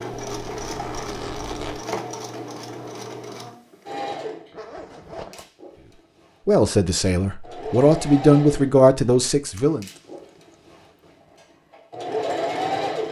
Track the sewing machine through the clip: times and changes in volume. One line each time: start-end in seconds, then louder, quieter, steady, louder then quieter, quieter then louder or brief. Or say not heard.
0.0-13.0 quieter then louder.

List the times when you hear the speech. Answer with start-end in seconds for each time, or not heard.
6.5-9.8.